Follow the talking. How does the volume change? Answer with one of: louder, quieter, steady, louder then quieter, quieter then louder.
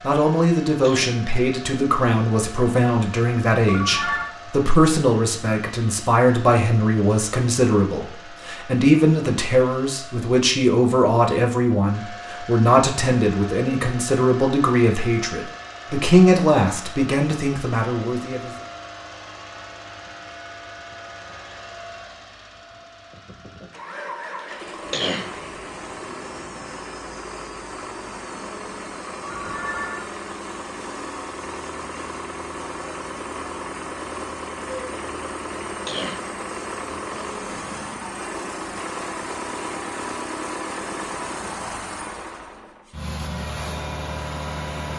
steady.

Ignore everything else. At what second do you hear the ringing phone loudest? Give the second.
4 s.